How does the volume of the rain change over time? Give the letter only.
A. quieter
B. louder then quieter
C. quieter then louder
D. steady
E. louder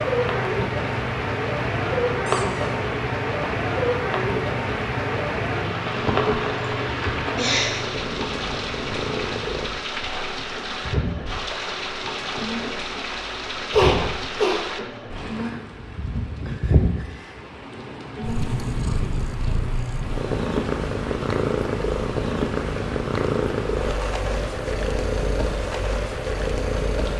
A.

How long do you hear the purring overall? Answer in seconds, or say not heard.
27 s.